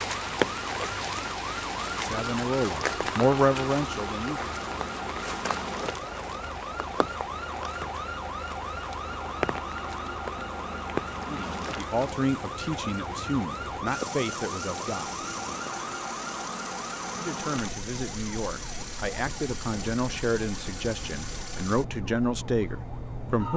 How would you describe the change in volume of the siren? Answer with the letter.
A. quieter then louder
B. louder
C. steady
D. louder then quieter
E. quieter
E.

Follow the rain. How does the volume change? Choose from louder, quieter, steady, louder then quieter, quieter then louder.
quieter.